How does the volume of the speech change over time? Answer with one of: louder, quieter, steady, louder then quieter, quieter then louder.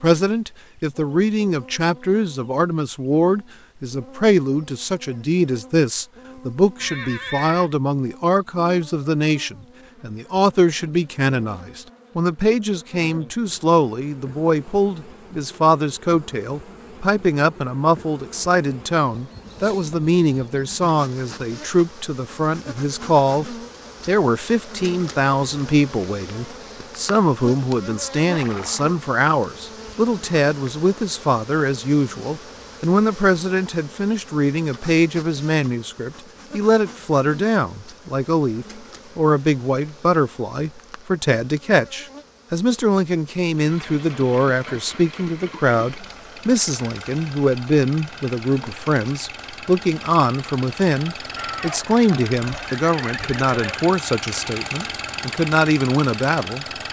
steady.